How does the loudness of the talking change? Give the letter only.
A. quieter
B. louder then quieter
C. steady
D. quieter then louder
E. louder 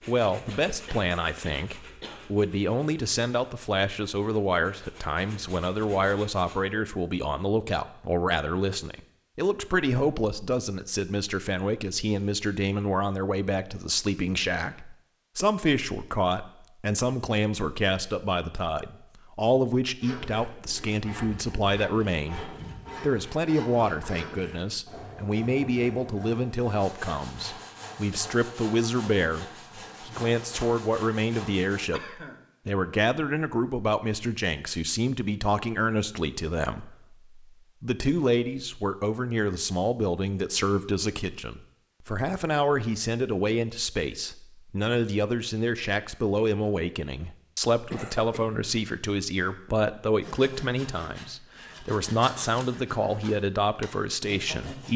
C.